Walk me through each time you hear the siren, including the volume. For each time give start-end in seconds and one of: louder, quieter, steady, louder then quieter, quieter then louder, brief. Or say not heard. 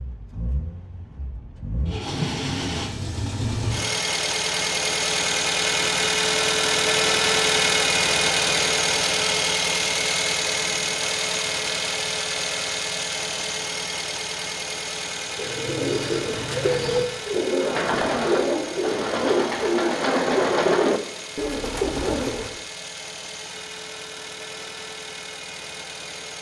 not heard.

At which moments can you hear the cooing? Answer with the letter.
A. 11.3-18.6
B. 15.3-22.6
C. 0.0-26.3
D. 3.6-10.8
B.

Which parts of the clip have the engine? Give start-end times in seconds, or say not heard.
0.0-26.3.